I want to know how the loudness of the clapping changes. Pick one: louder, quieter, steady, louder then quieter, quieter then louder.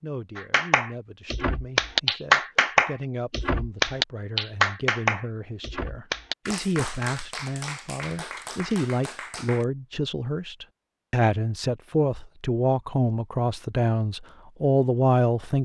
quieter.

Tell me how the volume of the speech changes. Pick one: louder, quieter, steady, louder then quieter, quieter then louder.
louder.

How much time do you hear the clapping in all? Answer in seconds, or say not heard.
9 s.